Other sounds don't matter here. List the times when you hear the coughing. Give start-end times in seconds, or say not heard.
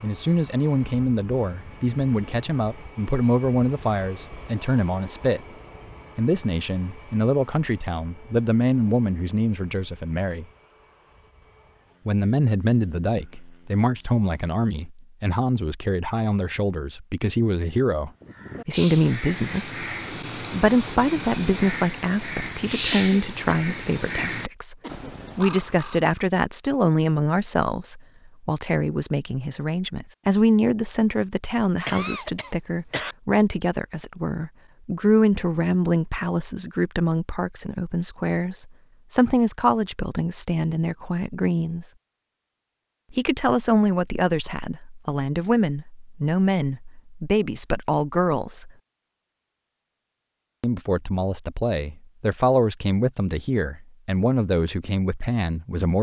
22.9-25.1, 31.9-33.1.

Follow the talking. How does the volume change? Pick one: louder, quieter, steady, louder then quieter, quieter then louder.
steady.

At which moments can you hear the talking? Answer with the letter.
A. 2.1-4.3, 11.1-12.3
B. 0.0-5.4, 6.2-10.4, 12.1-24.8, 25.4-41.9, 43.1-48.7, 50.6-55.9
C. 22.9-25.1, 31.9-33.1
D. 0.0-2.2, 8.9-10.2
B.